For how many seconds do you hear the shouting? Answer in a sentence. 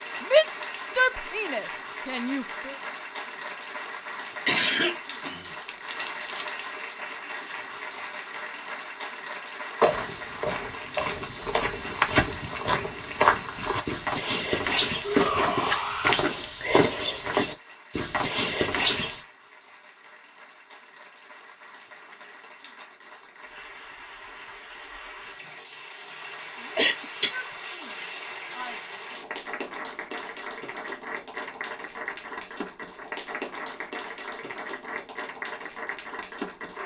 You can hear the shouting for 6 seconds altogether.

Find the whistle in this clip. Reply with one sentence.
You can't hear the whistle here.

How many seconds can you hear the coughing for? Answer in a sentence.
You can hear the coughing for 3 seconds altogether.